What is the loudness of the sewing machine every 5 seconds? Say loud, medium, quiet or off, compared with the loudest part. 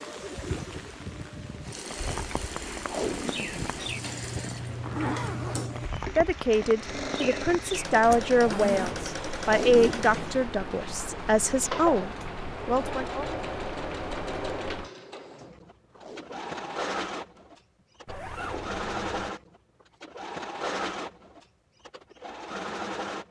medium, loud, loud, loud, loud.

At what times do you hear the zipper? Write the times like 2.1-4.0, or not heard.
3.9-5.9, 8.1-9.9, 18.1-19.1.